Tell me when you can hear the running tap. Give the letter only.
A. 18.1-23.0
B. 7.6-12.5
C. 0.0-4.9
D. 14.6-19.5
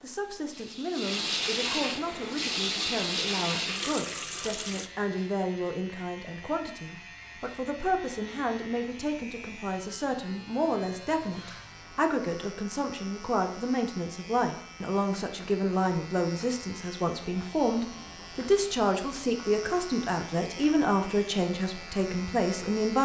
C.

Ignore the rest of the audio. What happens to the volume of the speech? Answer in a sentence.
The loudness of the speech goes up.